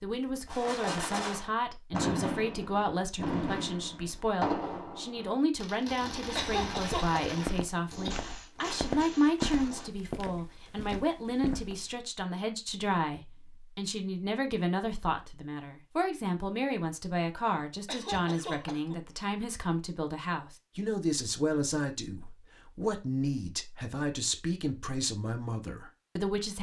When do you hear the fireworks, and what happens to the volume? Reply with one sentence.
You can hear the fireworks from 0.5 to 10.0 s, getting quieter.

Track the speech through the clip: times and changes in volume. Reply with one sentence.
You can hear the speech from 0.0 to 26.5 s, at a steady volume.